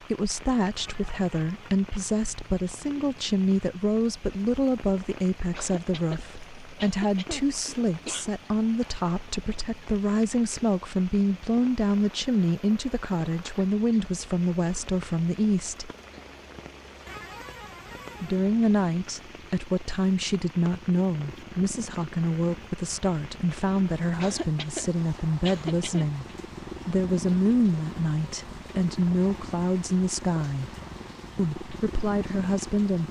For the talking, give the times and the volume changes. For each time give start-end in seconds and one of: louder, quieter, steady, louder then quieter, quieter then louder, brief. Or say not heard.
0.1-15.9 steady
18.2-30.7 steady
31.4-33.0 brief.